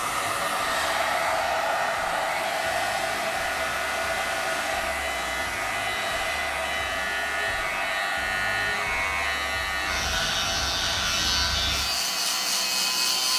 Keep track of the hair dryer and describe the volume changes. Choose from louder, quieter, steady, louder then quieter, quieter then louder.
quieter.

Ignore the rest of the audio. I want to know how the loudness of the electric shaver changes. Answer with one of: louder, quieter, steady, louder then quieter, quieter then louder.
louder.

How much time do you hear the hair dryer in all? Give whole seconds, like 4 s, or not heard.
13 s.